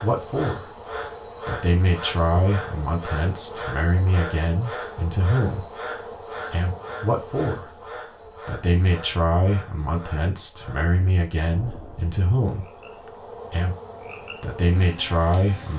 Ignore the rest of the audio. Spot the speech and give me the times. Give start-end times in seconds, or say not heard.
0.0-5.7, 6.5-12.7, 13.5-15.7.